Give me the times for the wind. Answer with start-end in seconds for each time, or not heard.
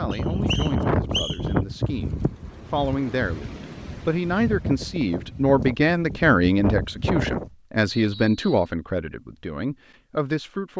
0.0-7.5.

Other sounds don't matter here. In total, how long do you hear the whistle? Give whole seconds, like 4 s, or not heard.
2 s.